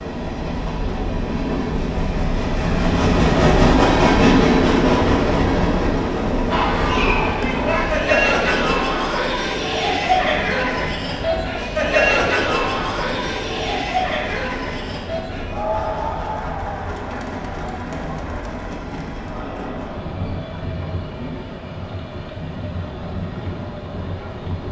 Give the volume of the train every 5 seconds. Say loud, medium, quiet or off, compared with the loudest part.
loud, medium, quiet, quiet, quiet.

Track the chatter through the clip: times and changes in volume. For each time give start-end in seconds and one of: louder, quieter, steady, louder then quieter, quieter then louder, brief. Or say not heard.
6.5-24.6 quieter.